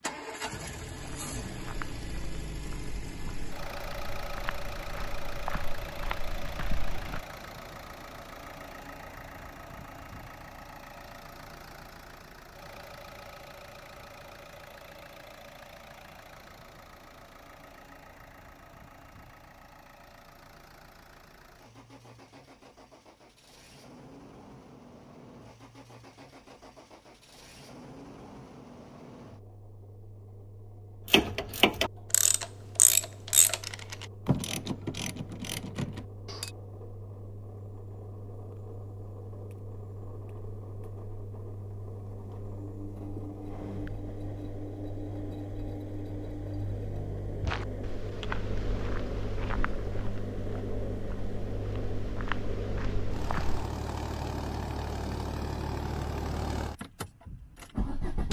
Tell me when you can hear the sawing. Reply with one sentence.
The sawing can't be heard in this clip.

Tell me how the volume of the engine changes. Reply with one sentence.
The loudness of the engine goes down, then up.